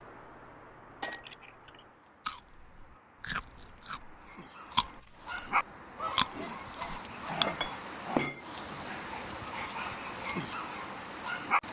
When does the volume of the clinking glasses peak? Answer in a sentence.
The volume of the clinking glasses peaks at 8 seconds.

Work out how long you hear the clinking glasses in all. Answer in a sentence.
The clinking glasses can be heard for 2 seconds in total.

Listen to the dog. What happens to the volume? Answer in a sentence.
The volume of the dog goes down.